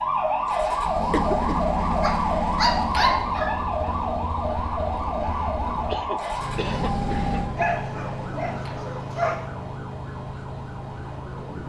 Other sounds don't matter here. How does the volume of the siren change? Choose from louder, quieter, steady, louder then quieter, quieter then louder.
quieter.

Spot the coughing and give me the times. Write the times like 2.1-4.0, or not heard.
1.1-1.7, 5.8-7.8.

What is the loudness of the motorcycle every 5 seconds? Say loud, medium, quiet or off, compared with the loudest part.
loud, loud, quiet.